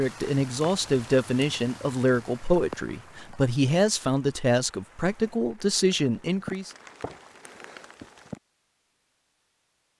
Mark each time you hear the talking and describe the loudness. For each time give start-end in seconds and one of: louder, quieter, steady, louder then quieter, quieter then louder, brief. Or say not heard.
0.0-6.7 steady.